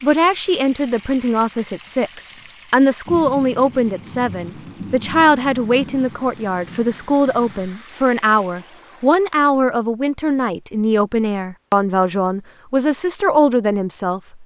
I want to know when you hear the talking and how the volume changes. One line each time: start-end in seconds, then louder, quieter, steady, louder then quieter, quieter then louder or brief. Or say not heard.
0.0-14.4 steady.